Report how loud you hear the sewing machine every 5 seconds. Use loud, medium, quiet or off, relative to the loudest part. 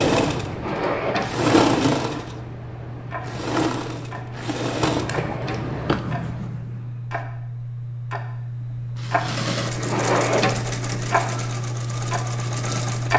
loud, medium, medium.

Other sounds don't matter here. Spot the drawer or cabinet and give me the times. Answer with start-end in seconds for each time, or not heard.
0.5-1.3, 5.0-6.1, 9.8-10.7.